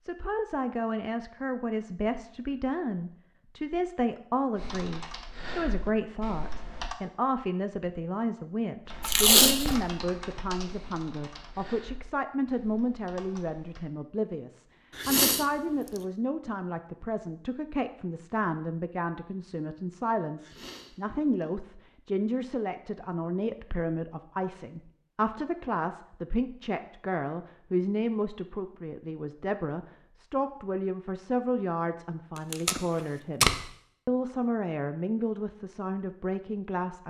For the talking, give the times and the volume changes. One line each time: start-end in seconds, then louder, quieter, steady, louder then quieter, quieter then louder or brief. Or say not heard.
0.0-37.0 steady.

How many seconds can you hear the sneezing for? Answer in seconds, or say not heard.
2 s.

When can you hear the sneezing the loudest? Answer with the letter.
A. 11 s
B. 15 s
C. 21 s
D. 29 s
B.